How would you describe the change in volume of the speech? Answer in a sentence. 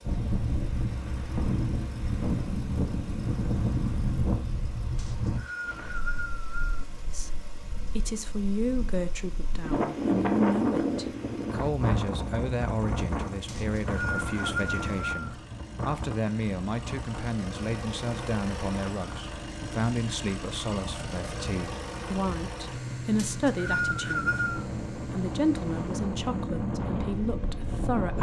The volume of the speech stays about the same.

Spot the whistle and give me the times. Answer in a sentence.
The whistle can be heard from 5.0 to 6.8 s, from 13.4 to 15.3 s and from 23.1 to 24.6 s.